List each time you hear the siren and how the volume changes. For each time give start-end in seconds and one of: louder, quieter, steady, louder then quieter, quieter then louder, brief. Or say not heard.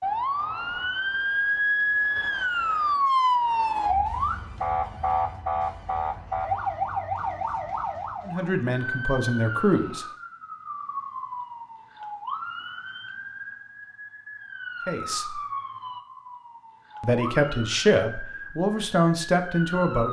0.0-20.0 quieter.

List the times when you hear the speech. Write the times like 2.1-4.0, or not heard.
8.2-10.1, 14.8-15.4, 17.0-20.0.